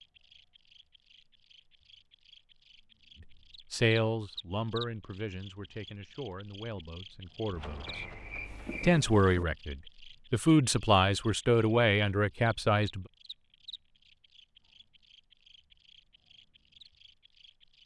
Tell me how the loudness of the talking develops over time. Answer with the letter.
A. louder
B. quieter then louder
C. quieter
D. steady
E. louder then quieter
B.